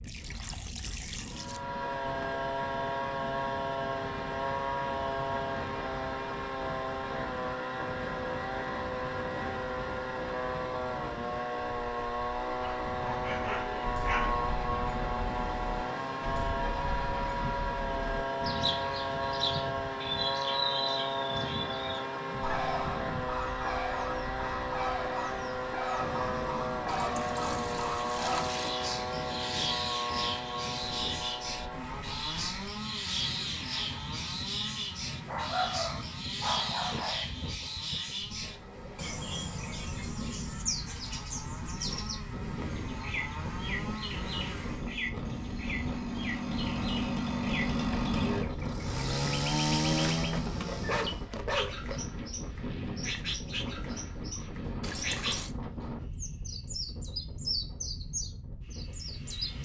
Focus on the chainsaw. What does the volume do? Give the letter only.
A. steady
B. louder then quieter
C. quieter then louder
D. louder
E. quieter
C.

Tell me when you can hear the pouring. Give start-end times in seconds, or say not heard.
0.0-1.6, 26.9-28.8, 54.8-55.5.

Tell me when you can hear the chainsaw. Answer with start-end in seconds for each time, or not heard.
1.3-51.2.